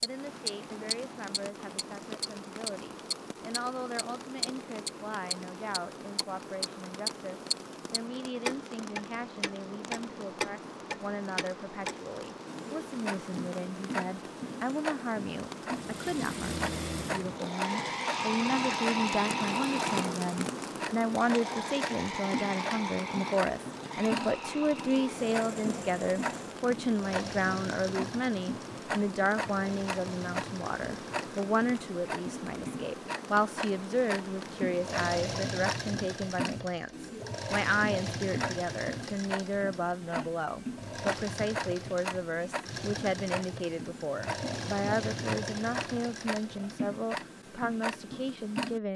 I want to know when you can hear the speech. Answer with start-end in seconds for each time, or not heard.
0.0-48.9.